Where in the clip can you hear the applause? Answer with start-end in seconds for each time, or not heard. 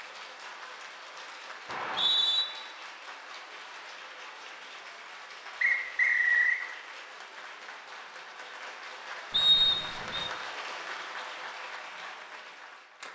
0.0-13.0.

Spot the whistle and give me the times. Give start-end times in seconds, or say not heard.
1.6-2.5, 5.6-6.6, 9.3-10.3.